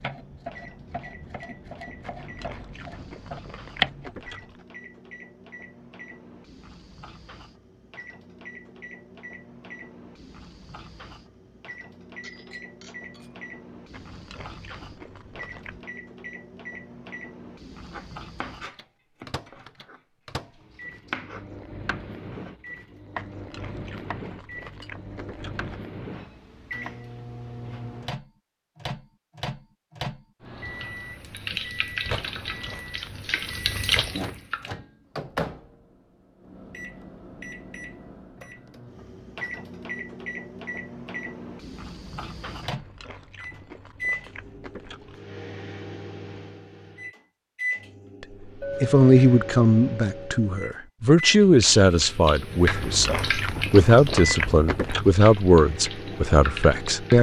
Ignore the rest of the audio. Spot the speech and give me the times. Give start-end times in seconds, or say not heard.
48.8-57.1.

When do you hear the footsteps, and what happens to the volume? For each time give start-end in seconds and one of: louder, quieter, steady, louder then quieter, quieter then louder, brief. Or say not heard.
not heard.